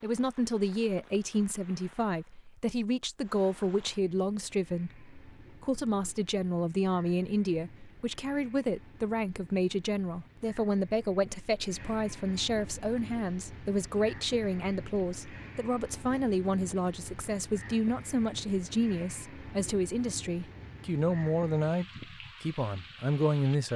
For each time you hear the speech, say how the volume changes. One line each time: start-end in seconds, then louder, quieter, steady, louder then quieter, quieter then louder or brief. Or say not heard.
0.0-23.7 steady.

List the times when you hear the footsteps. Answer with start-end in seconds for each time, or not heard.
not heard.